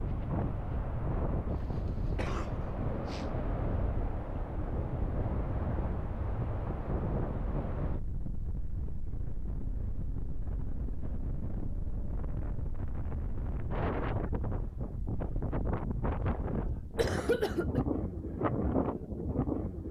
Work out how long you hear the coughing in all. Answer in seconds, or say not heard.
3 s.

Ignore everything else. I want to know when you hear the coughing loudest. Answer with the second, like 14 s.
17 s.